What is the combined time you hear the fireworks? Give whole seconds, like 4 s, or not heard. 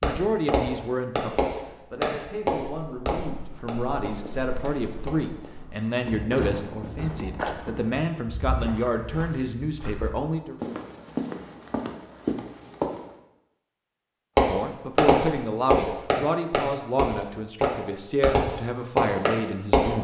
11 s.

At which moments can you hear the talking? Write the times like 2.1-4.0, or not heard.
0.0-10.6, 14.5-20.0.